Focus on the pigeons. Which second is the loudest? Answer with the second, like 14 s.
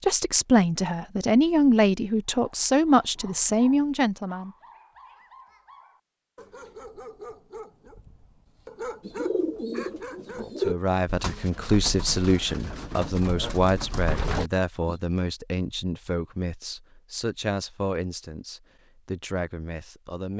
11 s.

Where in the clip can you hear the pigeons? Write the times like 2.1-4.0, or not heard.
9.0-14.9.